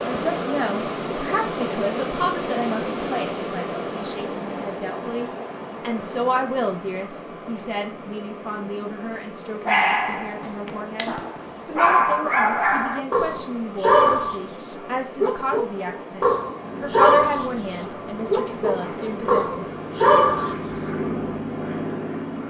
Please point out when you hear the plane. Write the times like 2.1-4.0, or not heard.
16.6-22.4.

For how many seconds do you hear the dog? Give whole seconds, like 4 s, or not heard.
11 s.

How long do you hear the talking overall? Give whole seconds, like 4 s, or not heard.
20 s.